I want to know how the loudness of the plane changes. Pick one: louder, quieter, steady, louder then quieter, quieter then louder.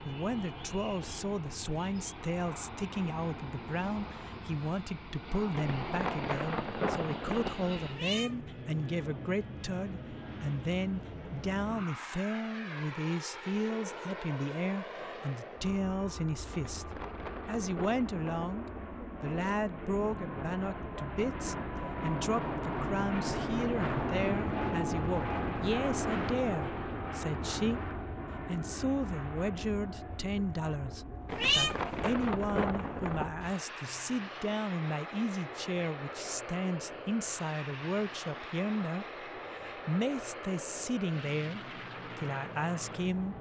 louder then quieter.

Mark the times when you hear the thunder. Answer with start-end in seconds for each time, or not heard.
5.5-7.5, 16.5-18.5, 31.2-33.3.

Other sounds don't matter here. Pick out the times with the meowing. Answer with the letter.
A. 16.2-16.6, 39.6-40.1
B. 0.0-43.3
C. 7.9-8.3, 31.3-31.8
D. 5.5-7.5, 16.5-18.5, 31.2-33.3
C.